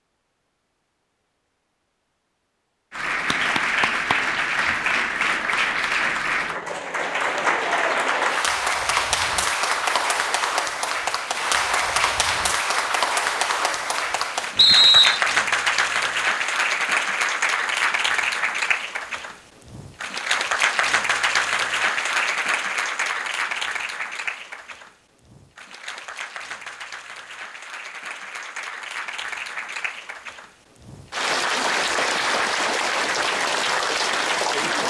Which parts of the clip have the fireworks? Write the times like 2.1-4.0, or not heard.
not heard.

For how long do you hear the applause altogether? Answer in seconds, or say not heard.
32 s.